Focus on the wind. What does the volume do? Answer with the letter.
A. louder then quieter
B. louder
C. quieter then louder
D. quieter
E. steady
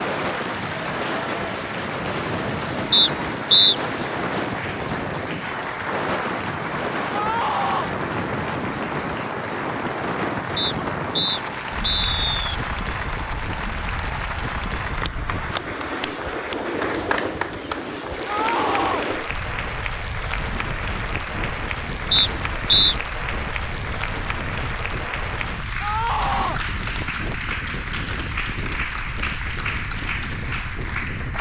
D.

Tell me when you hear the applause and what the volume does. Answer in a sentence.
You can hear the applause from 0.0 to 31.3 s, at a steady volume.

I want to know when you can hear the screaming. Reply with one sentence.
The screaming can be heard from 7.1 to 8.0 s, from 18.2 to 19.1 s and from 25.8 to 26.6 s.